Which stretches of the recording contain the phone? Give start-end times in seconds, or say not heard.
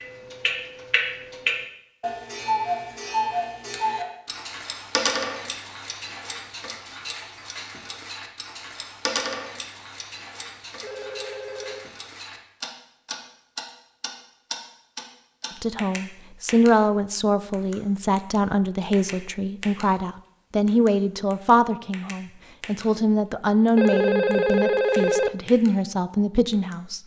10.8-11.8, 23.8-25.3.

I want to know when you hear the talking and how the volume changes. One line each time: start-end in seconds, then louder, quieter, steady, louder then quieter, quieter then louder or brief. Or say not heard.
15.6-27.0 steady.